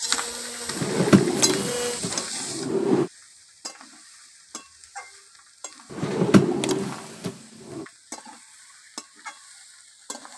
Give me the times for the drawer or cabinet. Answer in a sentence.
The drawer or cabinet can be heard from 0.7 to 3.1 s and from 5.9 to 7.8 s.